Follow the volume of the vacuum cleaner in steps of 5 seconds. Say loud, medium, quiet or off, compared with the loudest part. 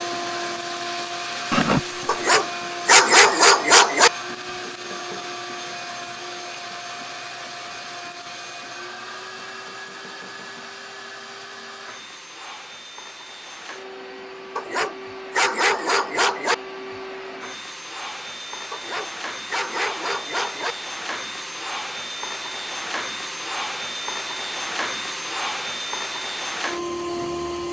loud, medium, medium, medium, loud, loud.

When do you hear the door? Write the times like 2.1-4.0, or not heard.
not heard.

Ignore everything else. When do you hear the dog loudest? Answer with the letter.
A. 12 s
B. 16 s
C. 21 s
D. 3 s
D.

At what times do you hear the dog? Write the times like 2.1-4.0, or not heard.
2.0-4.1, 14.6-16.6, 18.7-20.8.